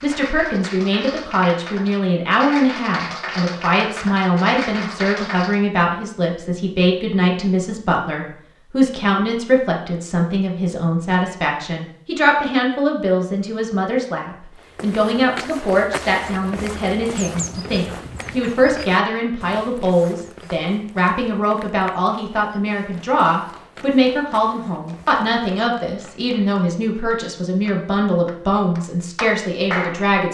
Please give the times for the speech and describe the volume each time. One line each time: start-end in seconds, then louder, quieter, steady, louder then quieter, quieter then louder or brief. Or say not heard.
0.0-30.2 steady.